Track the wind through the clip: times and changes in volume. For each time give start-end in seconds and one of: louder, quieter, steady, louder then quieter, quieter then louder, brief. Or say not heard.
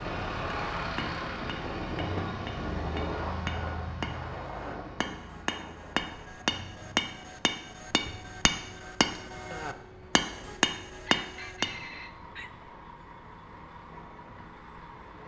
0.0-15.2 quieter.